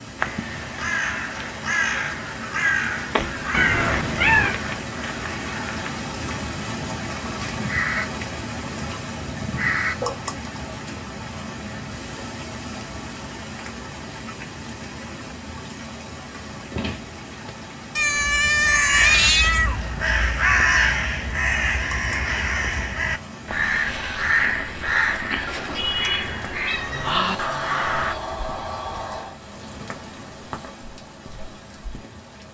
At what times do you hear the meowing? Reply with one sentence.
You can hear the meowing from 3.5 to 4.6 s, from 17.9 to 19.8 s and from 25.4 to 27.2 s.